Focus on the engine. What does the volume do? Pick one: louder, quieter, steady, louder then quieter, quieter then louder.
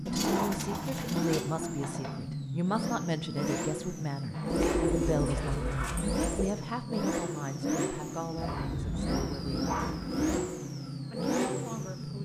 steady.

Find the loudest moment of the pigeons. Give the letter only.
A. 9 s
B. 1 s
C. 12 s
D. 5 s
D.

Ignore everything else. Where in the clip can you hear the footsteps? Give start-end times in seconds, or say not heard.
not heard.